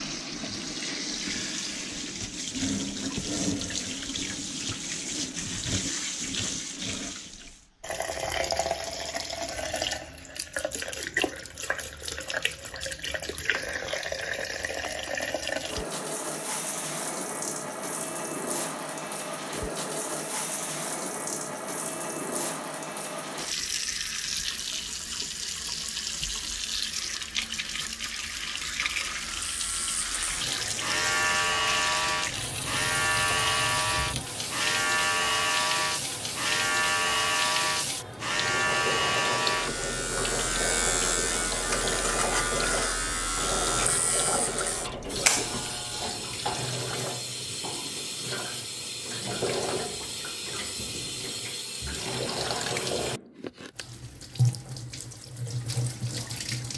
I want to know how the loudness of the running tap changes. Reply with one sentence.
The loudness of the running tap stays about the same.